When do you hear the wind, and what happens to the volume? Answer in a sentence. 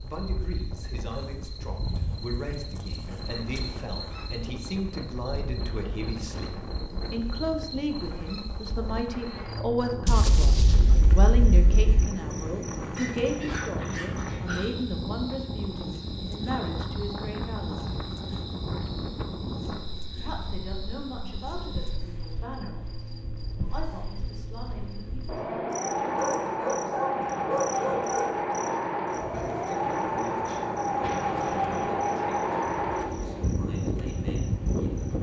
The wind can be heard from 0.0 to 35.1 s, getting louder.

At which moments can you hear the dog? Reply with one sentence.
You can hear the dog from 1.9 to 3.7 s, from 12.9 to 14.7 s and from 26.1 to 28.4 s.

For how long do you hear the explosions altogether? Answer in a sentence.
The explosions can be heard for 3 seconds in total.